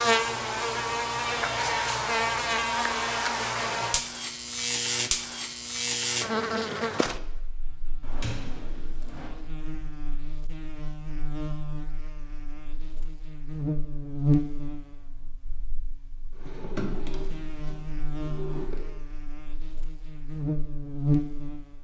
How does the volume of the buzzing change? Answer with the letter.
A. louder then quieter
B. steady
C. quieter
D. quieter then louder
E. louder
D.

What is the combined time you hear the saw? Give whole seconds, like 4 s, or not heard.
not heard.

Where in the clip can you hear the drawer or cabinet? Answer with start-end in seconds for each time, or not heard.
8.0-9.3, 16.4-18.8.